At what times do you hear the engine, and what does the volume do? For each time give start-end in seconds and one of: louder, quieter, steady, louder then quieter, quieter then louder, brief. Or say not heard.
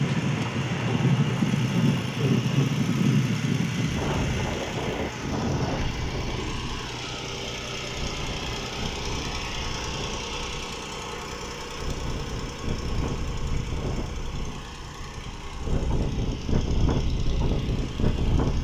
0.0-18.5 quieter.